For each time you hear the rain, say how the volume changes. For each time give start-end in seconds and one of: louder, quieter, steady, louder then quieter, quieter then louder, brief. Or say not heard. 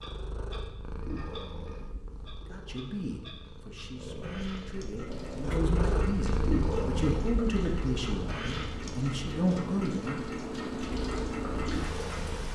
5.0-12.5 louder.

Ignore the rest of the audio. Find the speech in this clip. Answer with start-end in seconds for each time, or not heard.
2.5-10.2.